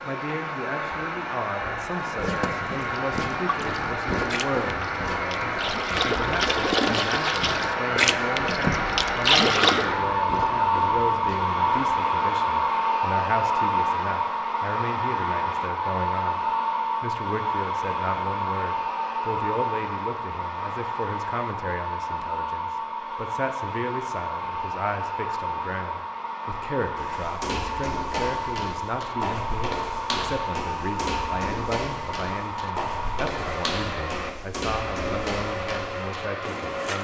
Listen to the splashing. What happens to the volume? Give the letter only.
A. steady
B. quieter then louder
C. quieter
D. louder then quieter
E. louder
E.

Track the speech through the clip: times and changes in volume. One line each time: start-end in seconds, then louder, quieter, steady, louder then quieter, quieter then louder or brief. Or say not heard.
0.0-36.9 steady.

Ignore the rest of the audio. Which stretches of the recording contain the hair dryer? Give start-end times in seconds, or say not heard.
0.0-36.9.